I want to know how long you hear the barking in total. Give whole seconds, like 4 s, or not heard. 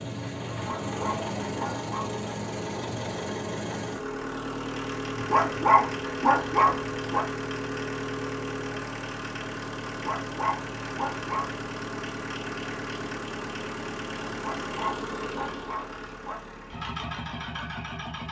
7 s.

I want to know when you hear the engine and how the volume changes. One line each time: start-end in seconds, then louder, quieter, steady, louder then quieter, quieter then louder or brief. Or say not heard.
0.0-18.2 steady.